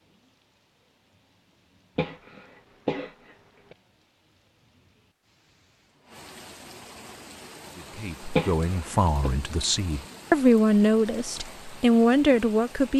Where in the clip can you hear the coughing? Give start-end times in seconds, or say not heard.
1.9-3.8, 8.3-9.3.